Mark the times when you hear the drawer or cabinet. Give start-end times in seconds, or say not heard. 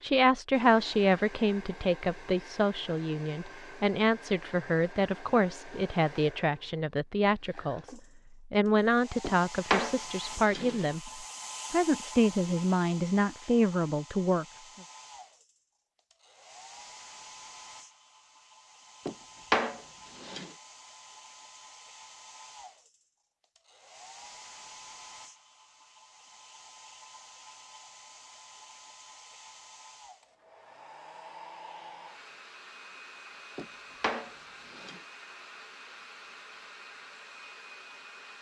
9.2-10.9, 19.1-20.5, 33.5-35.0.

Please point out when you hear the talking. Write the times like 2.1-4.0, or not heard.
0.0-14.4.